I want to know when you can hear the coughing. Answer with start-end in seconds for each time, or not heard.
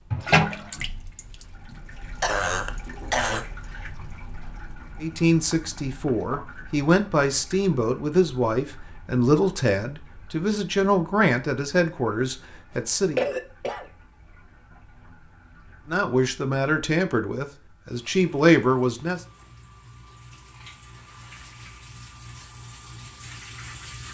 2.2-3.5, 13.2-13.8.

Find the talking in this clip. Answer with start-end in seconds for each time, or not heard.
5.0-13.2, 15.8-19.2.